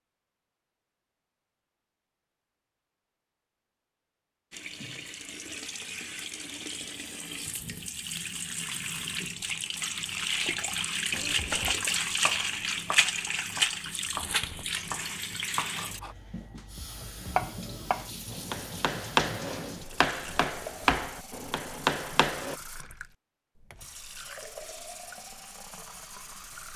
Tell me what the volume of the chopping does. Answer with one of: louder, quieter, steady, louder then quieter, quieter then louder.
louder.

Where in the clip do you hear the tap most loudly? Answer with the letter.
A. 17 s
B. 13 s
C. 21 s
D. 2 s
B.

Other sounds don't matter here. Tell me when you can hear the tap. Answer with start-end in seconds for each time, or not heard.
4.5-26.7.